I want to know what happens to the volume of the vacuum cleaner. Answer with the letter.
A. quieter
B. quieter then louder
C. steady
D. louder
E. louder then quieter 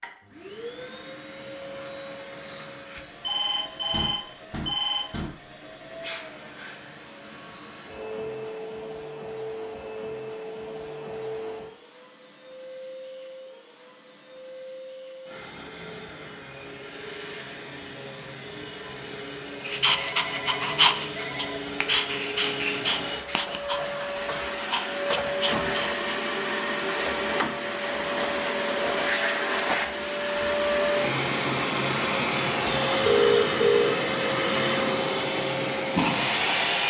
D.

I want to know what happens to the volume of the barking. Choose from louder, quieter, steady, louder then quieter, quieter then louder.
quieter.